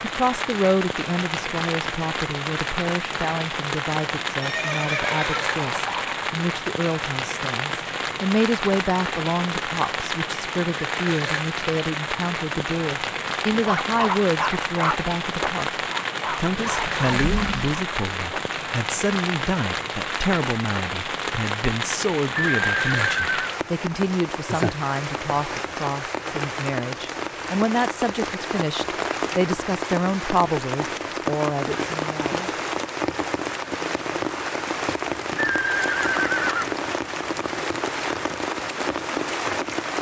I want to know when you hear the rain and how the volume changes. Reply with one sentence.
You can hear the rain from 0.0 to 39.9 s, at a steady volume.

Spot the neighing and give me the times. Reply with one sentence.
You can hear the neighing from 4.4 to 6.2 s, from 22.6 to 23.6 s and from 35.4 to 36.8 s.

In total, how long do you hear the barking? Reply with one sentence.
The barking can be heard for 5 seconds in total.